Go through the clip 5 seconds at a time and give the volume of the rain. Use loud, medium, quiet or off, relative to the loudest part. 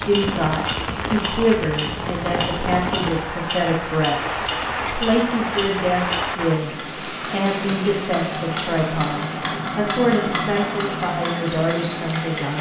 loud, loud, medium.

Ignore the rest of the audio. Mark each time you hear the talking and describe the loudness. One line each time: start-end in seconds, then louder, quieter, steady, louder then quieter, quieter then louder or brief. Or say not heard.
0.0-12.5 steady.